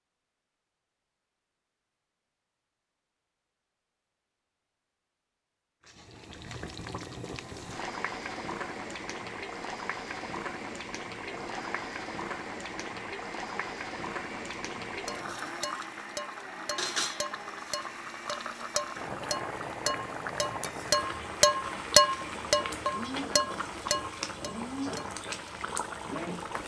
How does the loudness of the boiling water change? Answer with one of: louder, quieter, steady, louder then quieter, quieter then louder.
steady.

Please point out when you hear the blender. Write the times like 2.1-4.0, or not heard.
7.3-26.6.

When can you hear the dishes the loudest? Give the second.
22 s.